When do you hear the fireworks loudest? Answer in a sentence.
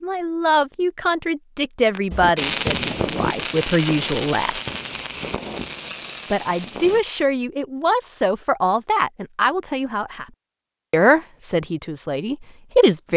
The loudest moment of the fireworks is at 3 seconds.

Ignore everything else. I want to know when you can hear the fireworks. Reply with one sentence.
You can hear the fireworks from 1.9 to 7.0 s.